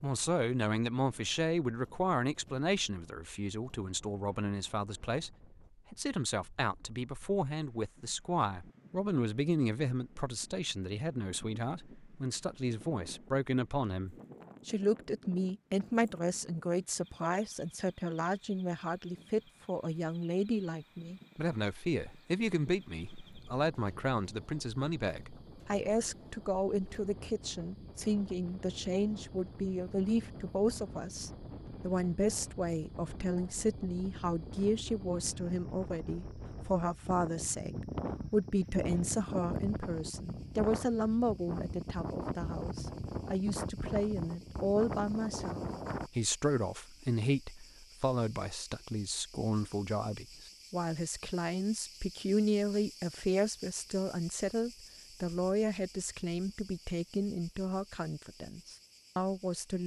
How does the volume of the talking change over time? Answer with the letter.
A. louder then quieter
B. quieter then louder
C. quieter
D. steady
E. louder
D.